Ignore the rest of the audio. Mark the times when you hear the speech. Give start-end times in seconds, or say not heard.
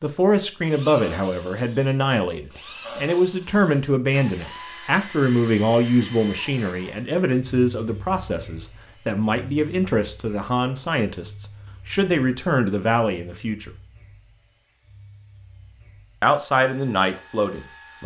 0.0-13.7, 16.2-18.0.